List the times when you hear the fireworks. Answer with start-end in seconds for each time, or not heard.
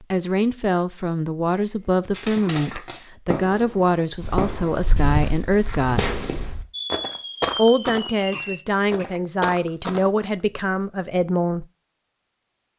2.1-8.6.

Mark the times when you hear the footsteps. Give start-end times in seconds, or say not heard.
4.2-10.2.